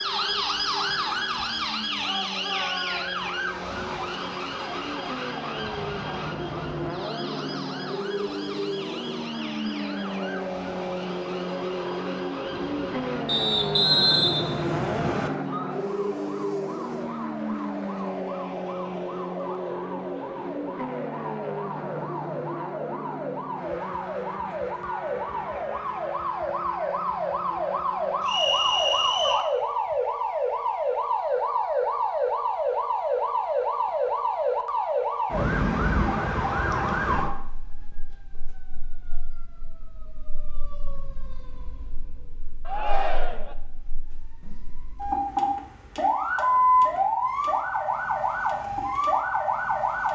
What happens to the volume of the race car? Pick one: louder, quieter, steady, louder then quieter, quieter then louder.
louder then quieter.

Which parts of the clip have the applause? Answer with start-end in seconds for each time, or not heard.
not heard.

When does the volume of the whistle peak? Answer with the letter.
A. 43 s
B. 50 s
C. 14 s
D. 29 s
C.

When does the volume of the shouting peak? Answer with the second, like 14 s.
43 s.